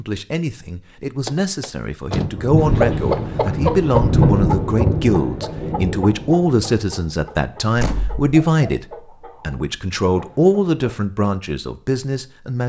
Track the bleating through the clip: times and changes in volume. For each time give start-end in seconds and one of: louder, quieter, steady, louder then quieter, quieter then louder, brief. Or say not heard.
not heard.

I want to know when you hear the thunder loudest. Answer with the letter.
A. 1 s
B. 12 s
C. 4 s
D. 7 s
C.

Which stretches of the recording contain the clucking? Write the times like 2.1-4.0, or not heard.
2.5-10.8.